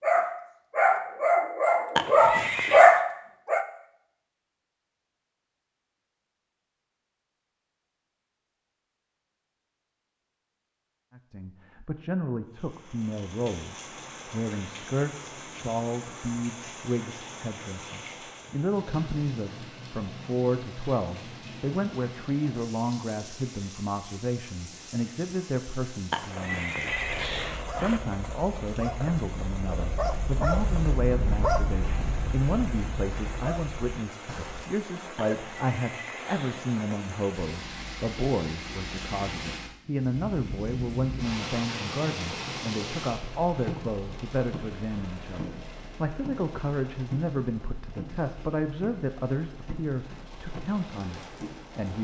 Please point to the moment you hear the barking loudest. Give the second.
3 s.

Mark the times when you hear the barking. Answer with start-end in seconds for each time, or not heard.
0.0-3.6, 26.8-35.5.